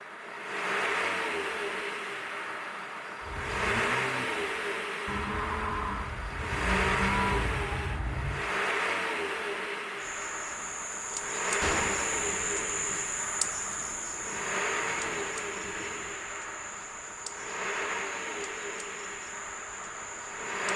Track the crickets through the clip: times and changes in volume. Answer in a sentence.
You can hear the crickets from 9.9 to 20.7 s, getting quieter.